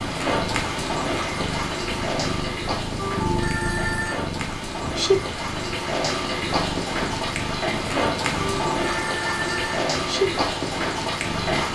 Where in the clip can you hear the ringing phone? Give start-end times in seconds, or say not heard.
3.0-4.2, 8.4-9.8.